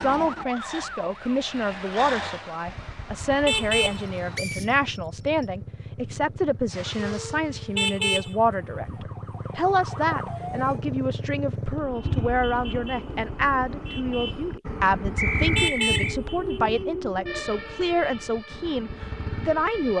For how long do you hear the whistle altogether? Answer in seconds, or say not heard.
2 s.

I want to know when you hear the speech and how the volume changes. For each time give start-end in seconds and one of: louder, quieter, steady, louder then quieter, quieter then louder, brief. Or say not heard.
0.0-19.9 steady.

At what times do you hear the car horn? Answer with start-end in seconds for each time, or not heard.
3.2-4.8, 7.5-9.1, 15.3-16.9.